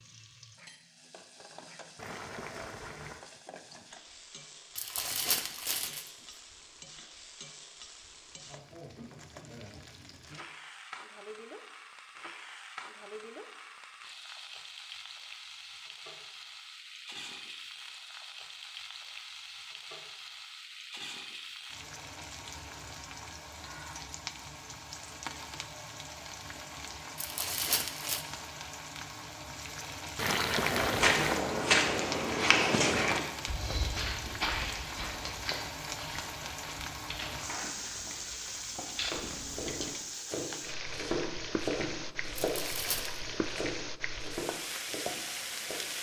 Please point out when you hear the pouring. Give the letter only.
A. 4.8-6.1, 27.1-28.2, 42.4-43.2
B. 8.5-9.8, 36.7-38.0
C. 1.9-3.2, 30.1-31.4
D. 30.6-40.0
C.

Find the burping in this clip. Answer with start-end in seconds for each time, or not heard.
not heard.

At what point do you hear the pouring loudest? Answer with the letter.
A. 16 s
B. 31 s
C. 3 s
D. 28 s
B.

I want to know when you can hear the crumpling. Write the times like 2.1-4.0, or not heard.
4.8-6.1, 27.1-28.2, 42.4-43.2.